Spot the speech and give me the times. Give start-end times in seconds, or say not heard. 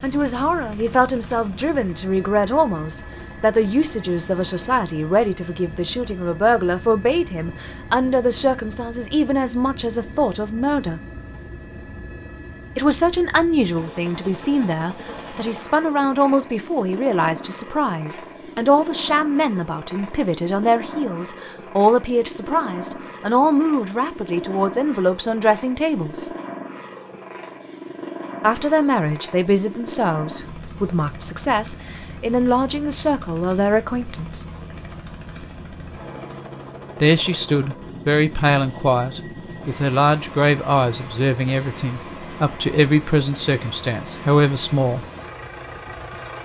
0.0-11.0, 12.8-26.2, 28.4-34.5, 37.0-45.0.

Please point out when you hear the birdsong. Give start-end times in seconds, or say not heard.
not heard.